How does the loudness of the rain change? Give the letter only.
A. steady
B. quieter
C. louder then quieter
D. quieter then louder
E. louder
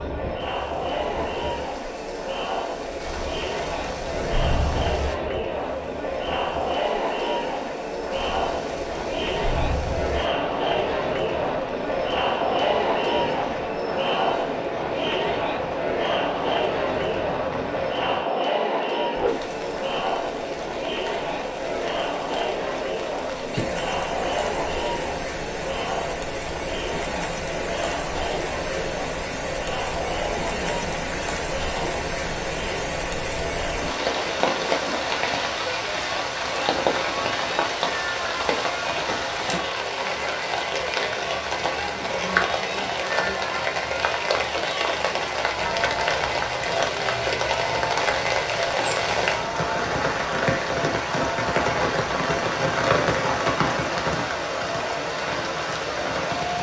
E.